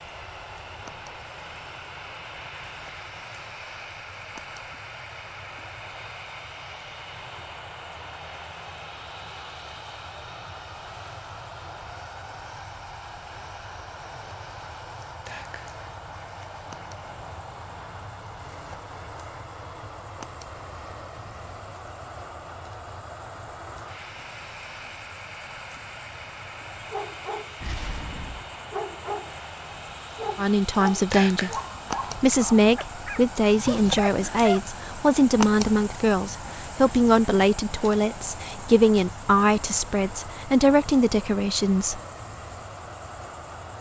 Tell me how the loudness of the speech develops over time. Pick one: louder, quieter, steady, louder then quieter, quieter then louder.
steady.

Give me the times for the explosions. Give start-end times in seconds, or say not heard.
27.6-28.5.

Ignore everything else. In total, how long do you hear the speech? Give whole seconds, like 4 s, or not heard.
12 s.